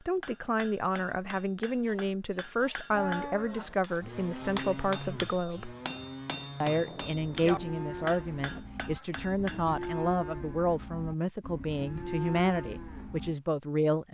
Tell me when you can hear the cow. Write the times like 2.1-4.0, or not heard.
2.9-13.3.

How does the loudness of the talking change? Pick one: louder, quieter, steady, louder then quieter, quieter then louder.
steady.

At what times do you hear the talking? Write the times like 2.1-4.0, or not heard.
0.1-5.8, 6.6-14.0.